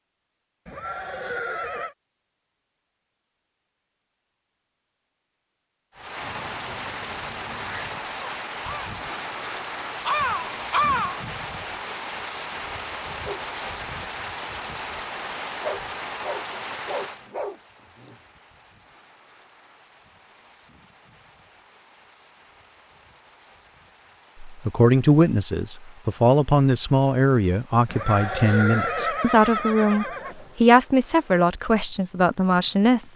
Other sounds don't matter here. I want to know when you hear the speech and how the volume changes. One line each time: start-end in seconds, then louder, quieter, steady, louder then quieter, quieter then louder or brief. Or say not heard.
24.4-33.1 steady.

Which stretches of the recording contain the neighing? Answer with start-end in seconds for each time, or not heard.
0.7-1.9, 27.9-30.5.